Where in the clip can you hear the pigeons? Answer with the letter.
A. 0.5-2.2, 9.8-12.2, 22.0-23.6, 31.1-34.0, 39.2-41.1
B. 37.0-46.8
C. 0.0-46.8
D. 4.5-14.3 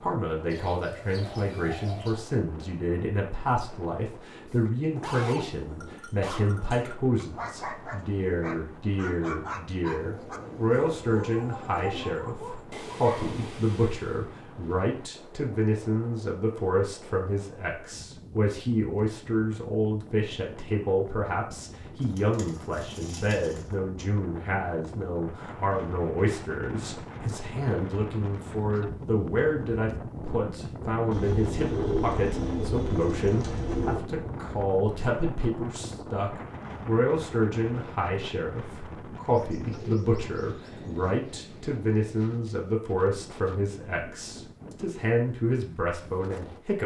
A.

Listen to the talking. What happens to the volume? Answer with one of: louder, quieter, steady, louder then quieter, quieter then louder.
steady.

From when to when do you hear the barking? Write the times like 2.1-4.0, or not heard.
4.5-14.3.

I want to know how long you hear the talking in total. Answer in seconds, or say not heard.
47 s.